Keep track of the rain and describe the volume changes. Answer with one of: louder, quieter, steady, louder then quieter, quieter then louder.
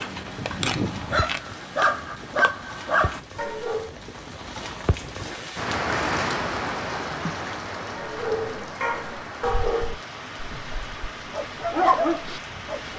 louder then quieter.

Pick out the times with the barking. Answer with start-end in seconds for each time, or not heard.
0.0-3.9, 8.0-12.9.